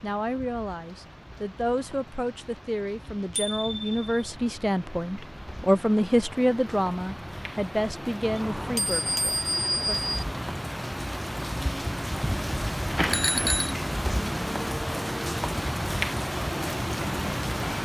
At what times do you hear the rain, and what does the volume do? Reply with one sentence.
You can hear the rain from 0.0 to 17.8 s, getting louder.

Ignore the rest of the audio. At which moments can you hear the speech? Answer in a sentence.
You can hear the speech from 0.0 to 10.0 s.